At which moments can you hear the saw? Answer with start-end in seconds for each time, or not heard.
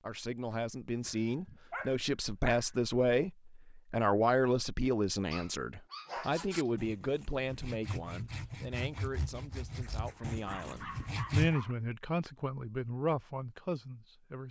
6.3-11.6.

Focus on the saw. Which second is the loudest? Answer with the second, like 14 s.
11 s.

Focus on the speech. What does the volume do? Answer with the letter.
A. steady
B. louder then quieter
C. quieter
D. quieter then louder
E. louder
D.